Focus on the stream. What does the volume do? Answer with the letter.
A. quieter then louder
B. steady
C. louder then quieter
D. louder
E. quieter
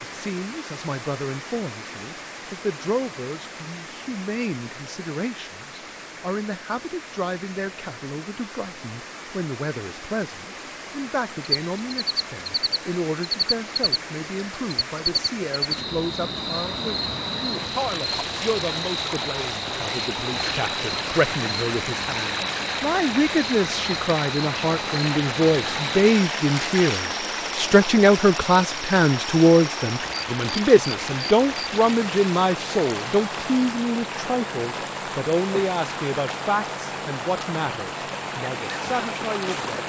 D.